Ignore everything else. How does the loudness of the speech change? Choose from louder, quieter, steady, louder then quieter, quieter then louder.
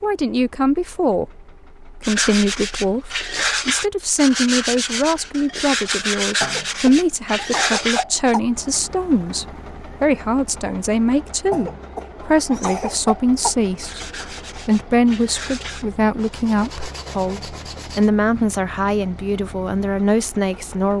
steady.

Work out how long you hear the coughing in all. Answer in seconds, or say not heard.
4 s.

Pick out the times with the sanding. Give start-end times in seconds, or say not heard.
2.0-8.3, 13.8-18.1.